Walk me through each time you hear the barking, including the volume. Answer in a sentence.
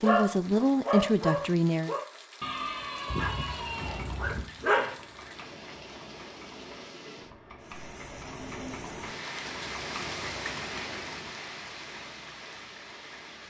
The barking can be heard from 0.0 to 5.0 s, getting quieter.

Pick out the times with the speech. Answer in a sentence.
You can hear the speech from 0.0 to 1.9 s.